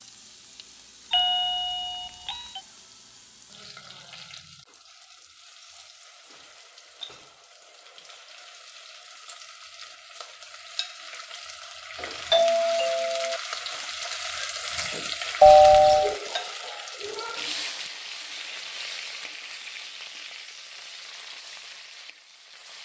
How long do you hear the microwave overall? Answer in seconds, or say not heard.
not heard.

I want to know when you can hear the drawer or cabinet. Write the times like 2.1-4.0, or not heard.
not heard.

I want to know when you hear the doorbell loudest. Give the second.
16 s.